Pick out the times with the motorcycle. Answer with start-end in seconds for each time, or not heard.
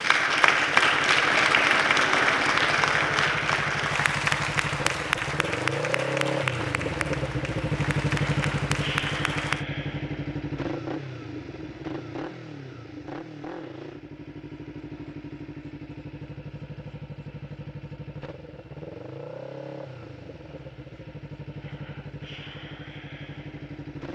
0.0-24.1.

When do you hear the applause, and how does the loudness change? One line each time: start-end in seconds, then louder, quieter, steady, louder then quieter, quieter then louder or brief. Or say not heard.
0.0-9.7 quieter.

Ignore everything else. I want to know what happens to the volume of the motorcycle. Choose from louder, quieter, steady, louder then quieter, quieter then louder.
louder then quieter.